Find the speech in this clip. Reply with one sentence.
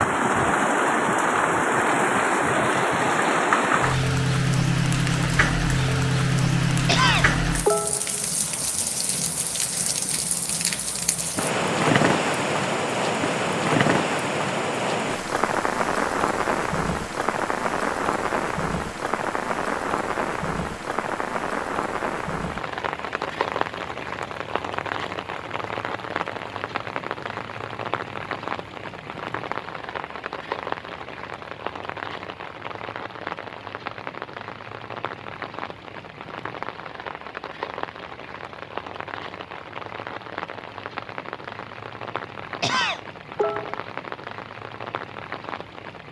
You can't hear the speech here.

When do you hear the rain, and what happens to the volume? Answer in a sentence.
You can hear the rain from 0.0 to 46.0 s, getting quieter.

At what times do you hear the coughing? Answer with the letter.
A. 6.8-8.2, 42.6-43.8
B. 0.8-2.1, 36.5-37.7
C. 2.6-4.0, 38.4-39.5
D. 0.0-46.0
A.